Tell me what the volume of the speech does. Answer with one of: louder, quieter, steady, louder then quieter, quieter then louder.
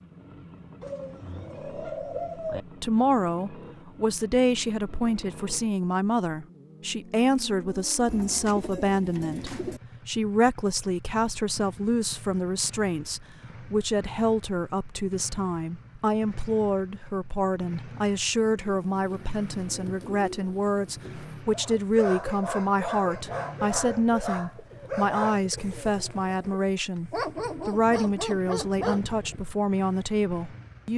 steady.